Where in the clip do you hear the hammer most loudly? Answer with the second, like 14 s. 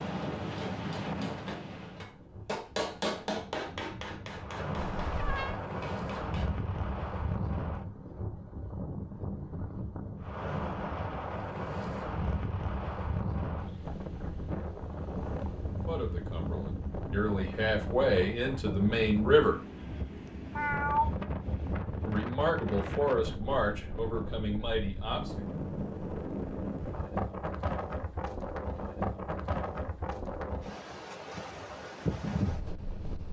3 s.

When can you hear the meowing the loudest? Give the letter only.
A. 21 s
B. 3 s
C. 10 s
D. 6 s
A.